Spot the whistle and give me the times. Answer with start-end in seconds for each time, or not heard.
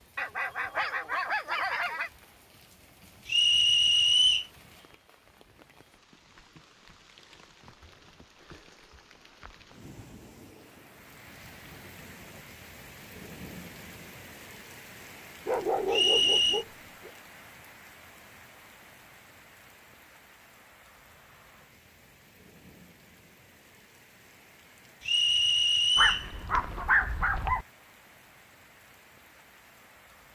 3.2-4.5, 15.9-16.6, 25.1-26.3.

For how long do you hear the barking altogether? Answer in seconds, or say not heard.
5 s.